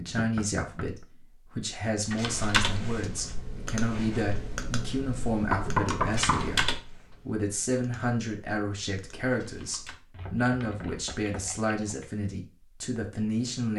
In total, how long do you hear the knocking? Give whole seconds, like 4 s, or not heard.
3 s.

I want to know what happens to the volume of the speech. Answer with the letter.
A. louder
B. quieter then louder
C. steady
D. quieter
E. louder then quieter
C.